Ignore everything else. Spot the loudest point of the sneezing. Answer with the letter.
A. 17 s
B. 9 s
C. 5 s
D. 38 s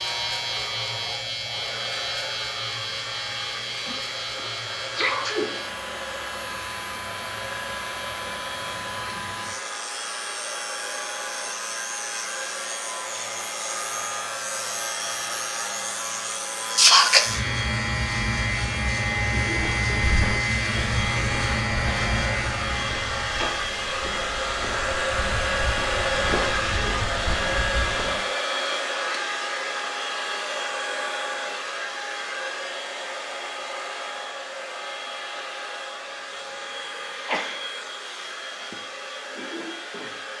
A.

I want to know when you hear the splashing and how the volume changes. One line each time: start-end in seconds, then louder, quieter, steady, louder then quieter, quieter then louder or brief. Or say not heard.
not heard.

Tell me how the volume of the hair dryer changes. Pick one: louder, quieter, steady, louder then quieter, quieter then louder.
louder then quieter.